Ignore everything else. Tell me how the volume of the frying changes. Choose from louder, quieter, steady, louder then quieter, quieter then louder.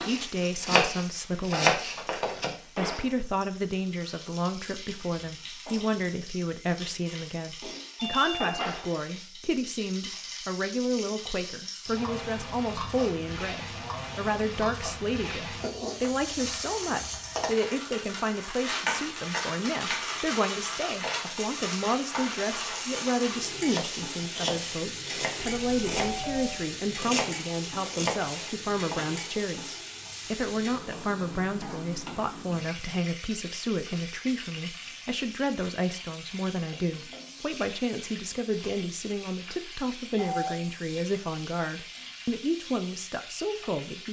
louder then quieter.